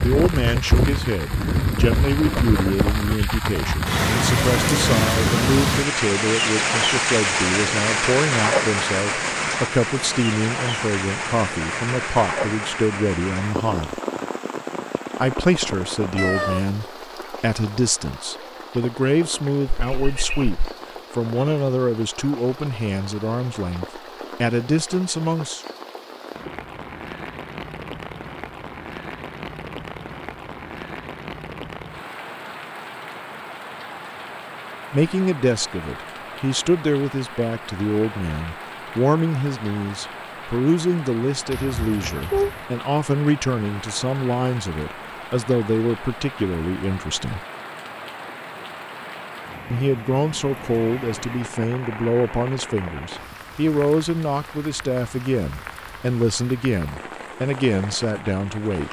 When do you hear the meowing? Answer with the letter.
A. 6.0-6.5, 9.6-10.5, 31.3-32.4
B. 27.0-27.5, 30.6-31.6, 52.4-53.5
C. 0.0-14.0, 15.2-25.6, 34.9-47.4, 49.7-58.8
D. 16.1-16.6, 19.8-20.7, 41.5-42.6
D.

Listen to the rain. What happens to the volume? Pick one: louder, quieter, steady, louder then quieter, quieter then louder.
quieter.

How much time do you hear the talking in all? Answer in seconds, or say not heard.
46 s.